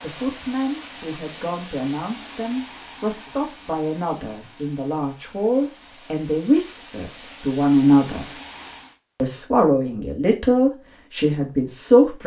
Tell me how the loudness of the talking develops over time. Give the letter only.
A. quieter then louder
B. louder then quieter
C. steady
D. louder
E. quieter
D.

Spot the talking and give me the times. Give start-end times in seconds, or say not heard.
0.0-8.3, 9.2-12.2.